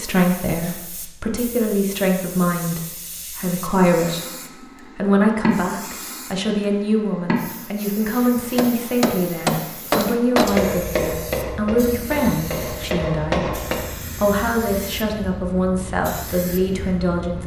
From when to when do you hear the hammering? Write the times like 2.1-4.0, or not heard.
8.6-13.9.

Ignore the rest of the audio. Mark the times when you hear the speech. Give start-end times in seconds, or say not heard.
0.0-4.2, 5.0-13.4, 14.2-17.4.